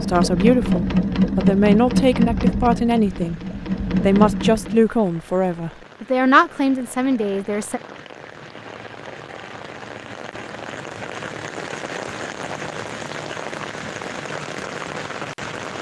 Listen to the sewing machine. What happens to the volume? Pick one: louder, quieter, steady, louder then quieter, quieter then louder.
quieter then louder.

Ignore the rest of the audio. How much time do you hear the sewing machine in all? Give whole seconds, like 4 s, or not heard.
5 s.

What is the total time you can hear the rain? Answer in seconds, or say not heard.
13 s.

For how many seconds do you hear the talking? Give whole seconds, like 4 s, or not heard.
7 s.